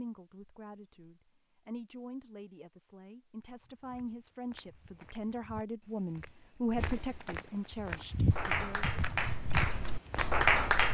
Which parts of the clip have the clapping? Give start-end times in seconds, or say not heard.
8.3-10.9.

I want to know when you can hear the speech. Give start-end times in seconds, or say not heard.
0.0-9.0.